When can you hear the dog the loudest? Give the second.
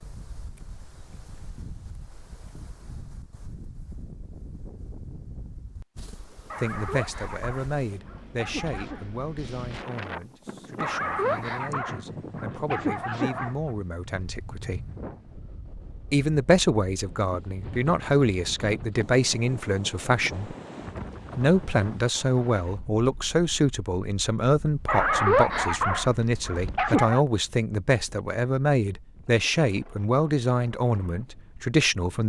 25 s.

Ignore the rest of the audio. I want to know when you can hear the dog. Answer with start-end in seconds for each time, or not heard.
6.5-9.1, 10.8-13.7, 24.9-27.2.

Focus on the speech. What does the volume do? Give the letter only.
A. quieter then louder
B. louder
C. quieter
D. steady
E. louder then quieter
B.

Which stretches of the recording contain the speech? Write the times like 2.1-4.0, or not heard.
6.5-14.9, 16.1-20.6, 21.4-32.2.